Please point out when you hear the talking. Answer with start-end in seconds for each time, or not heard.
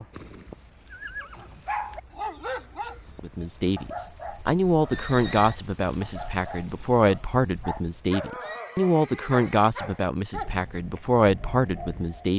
3.2-12.3.